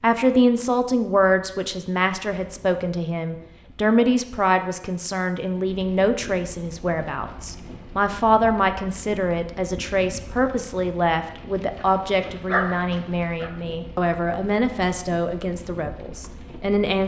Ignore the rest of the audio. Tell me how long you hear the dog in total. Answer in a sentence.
The dog can be heard for 2 seconds in total.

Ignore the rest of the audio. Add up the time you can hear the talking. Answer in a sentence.
You can hear the talking for 17 seconds altogether.